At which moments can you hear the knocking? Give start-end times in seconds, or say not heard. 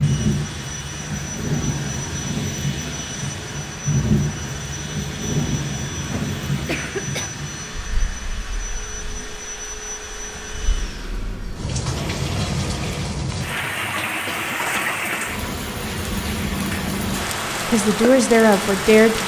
not heard.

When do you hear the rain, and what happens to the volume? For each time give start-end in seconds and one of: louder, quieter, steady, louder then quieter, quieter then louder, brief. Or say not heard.
0.0-19.2 quieter then louder.